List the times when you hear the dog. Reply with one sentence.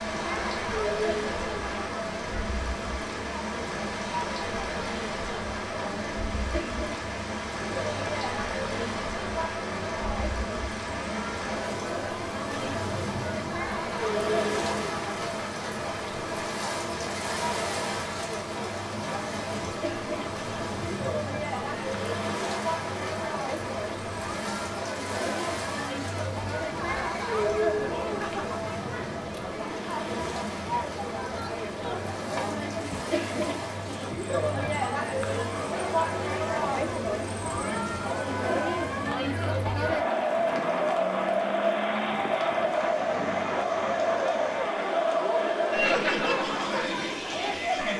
The dog can't be heard in this clip.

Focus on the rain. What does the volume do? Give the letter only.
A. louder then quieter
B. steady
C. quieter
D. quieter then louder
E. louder
C.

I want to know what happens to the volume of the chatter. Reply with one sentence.
The volume of the chatter goes up.